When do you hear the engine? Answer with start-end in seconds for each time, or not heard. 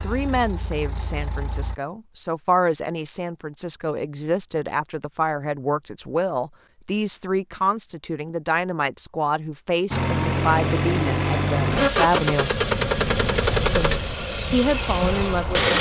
0.0-1.8, 9.9-15.7.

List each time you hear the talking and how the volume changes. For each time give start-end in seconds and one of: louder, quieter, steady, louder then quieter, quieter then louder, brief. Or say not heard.
0.0-12.5 steady
13.7-15.7 brief.